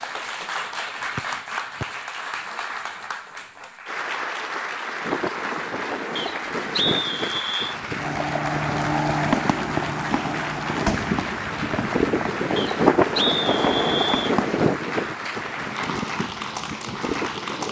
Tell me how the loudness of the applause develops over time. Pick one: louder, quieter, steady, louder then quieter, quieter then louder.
steady.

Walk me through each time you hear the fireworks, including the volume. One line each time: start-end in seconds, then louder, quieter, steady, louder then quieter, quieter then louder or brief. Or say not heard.
8.0-14.7 quieter.